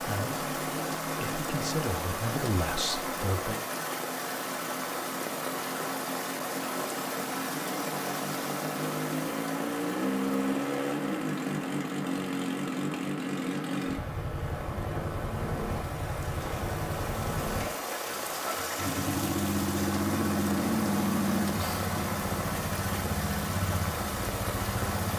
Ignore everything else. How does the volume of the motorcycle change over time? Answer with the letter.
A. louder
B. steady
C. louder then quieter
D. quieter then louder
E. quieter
A.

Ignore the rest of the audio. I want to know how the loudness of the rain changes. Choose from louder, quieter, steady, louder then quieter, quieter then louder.
quieter then louder.